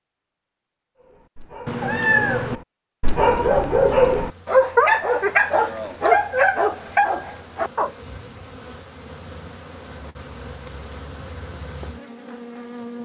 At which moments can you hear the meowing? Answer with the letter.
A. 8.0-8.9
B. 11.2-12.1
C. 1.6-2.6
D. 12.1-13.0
C.